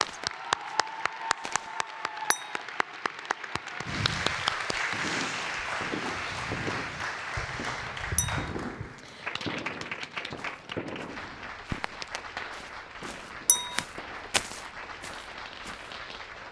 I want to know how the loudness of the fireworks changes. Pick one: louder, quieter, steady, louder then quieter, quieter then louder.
quieter.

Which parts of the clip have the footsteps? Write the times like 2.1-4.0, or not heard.
0.0-1.7, 10.3-15.9.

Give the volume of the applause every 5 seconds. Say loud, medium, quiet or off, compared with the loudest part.
loud, loud, medium, medium.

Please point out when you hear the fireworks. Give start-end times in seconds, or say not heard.
4.9-16.3.